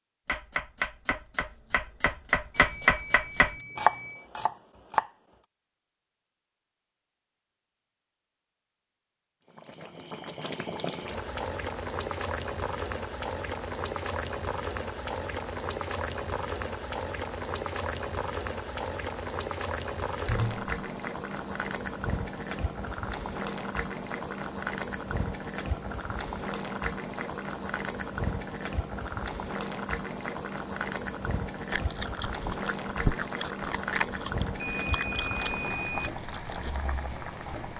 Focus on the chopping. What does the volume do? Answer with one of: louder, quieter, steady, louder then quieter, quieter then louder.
louder then quieter.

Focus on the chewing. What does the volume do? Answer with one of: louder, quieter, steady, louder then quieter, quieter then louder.
louder then quieter.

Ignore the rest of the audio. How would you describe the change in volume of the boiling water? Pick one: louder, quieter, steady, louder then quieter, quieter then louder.
steady.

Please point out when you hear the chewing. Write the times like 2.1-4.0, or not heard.
31.7-36.8.